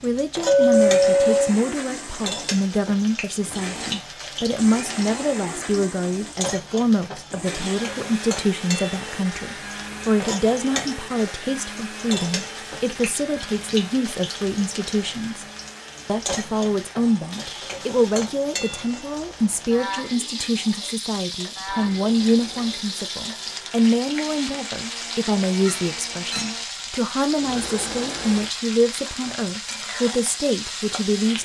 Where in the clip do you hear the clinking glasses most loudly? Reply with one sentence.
The volume of the clinking glasses peaks at 1 second.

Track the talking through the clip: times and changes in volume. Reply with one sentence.
The talking can be heard from 0.0 to 15.4 s, at a steady volume; and from 16.1 to 31.4 s, at a steady volume.